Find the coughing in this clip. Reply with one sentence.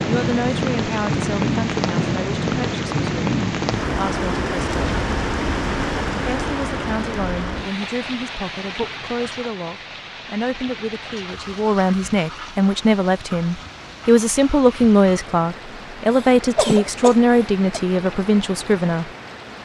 You can hear the coughing from 16.1 to 17.8 s.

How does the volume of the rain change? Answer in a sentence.
The volume of the rain goes down.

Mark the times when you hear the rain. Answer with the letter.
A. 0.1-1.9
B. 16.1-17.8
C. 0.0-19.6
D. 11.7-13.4
C.